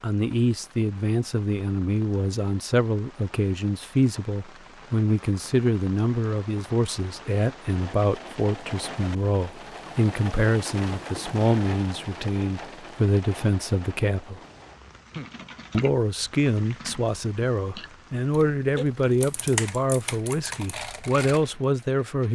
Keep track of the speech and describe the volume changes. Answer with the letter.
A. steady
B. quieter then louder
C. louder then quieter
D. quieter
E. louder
A.